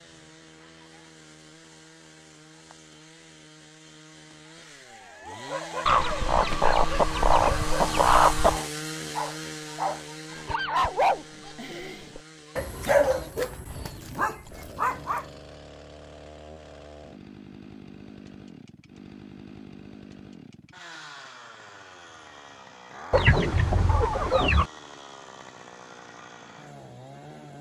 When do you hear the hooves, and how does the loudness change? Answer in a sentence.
You can't hear the hooves here.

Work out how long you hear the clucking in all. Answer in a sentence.
You can hear the clucking for 4 seconds altogether.